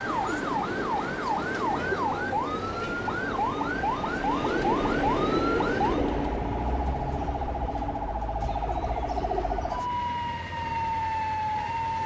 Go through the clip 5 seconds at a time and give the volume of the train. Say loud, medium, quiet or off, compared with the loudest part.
loud, loud, medium.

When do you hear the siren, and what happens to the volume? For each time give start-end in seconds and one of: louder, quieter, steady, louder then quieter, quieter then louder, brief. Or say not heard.
0.0-12.0 steady.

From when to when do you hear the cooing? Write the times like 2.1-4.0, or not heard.
0.1-2.1, 4.5-6.3, 8.4-9.9.